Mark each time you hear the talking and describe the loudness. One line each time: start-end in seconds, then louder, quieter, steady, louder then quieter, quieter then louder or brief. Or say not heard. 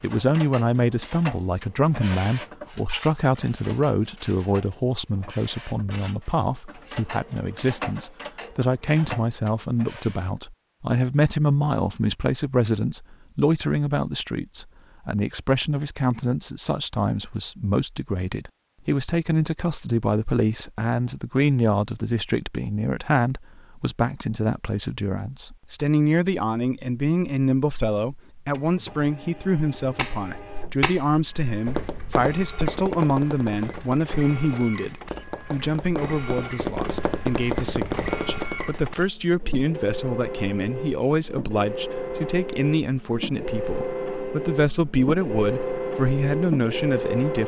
0.0-47.4 steady.